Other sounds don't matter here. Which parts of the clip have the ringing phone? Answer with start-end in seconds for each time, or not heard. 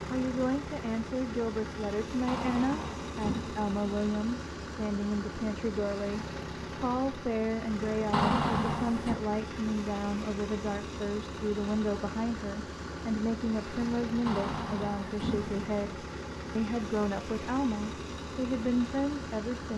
not heard.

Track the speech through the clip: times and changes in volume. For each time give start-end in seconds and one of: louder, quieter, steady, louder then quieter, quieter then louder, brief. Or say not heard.
0.1-19.7 steady.